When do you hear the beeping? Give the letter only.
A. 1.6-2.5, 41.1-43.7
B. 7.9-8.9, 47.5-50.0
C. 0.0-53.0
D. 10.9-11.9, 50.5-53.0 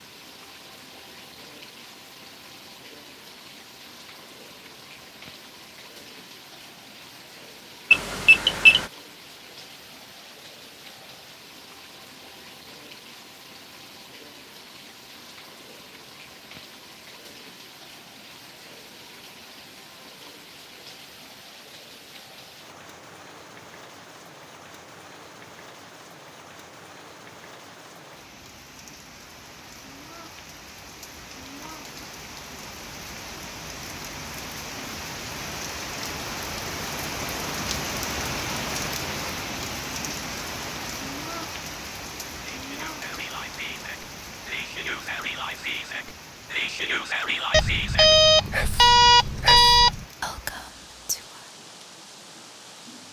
B.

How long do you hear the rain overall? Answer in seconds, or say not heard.
53 s.